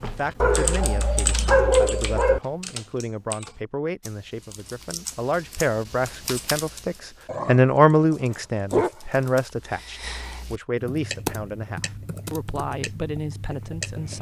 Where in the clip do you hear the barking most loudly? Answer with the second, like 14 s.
2 s.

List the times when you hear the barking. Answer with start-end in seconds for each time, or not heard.
0.4-2.4, 7.2-8.9.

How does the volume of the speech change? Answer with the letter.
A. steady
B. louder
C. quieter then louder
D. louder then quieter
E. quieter
D.